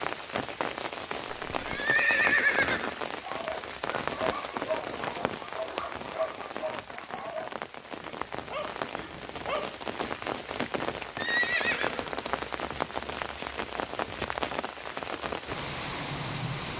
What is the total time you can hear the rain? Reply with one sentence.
You can hear the rain for 17 seconds altogether.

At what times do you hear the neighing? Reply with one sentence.
The neighing can be heard from 1.4 to 3.0 s and from 11.2 to 12.3 s.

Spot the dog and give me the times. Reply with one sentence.
You can hear the dog from 3.2 to 9.8 s.